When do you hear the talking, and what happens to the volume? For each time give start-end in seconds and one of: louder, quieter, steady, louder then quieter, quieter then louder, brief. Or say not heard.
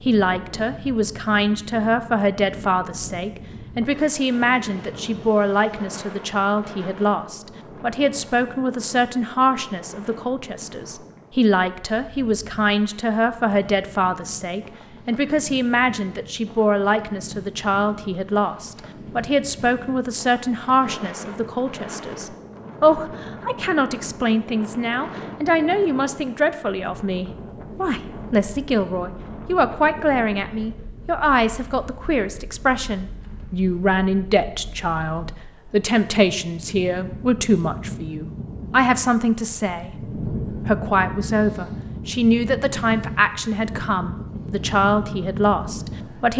0.0-46.3 steady.